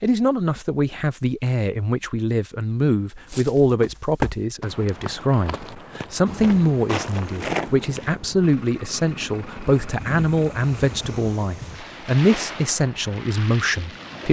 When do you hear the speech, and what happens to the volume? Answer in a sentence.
You can hear the speech from 0.0 to 14.2 s, at a steady volume.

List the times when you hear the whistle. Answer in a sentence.
The whistle can't be heard in this clip.